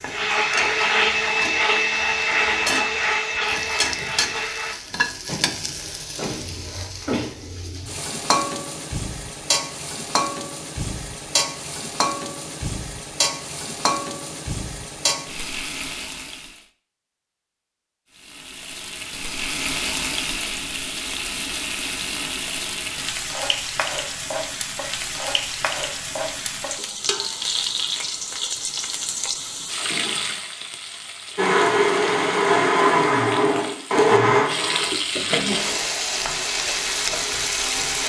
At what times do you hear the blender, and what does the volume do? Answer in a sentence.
The blender can be heard from 0.0 to 4.8 s, getting quieter; and from 31.4 to 38.0 s, getting quieter.